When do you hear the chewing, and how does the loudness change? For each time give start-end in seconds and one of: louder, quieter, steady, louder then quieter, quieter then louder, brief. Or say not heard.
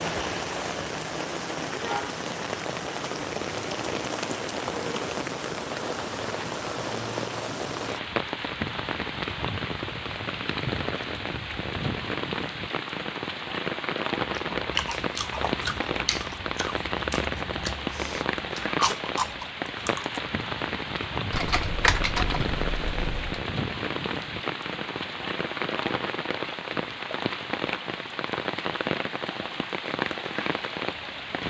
14.5-20.2 quieter then louder.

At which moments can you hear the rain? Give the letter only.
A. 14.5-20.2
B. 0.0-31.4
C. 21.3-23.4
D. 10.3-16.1
B.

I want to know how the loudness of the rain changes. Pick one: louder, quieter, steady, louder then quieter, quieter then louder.
steady.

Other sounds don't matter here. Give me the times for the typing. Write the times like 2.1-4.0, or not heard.
21.3-23.4.